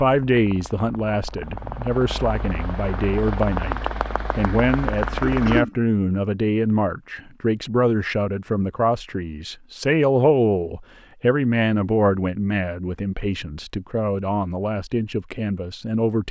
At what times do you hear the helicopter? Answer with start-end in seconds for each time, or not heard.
0.2-5.7.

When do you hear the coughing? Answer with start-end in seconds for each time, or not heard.
5.2-5.8.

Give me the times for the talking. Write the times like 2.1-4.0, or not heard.
0.0-16.2.